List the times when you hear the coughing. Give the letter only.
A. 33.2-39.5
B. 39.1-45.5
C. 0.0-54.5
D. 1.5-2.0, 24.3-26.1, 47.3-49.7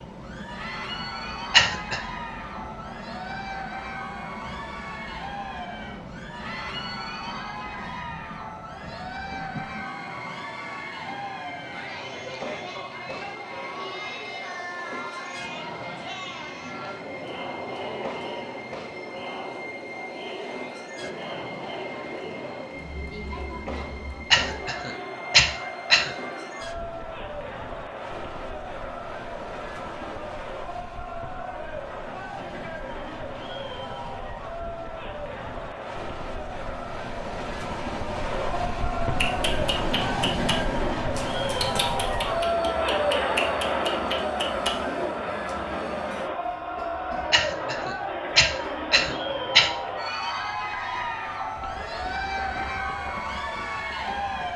D.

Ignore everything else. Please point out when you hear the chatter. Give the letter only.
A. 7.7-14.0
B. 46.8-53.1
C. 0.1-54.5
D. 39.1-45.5
C.